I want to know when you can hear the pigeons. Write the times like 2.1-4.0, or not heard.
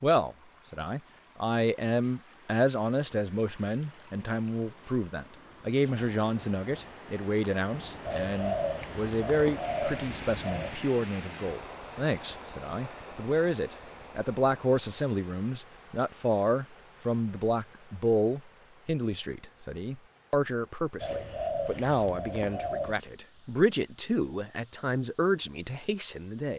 8.1-10.8, 21.0-22.9.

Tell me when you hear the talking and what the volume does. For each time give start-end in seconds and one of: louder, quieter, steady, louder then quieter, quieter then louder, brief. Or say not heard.
0.0-26.5 steady.